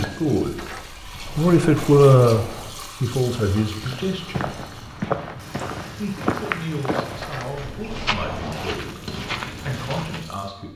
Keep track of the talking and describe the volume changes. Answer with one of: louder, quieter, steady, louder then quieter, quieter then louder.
quieter.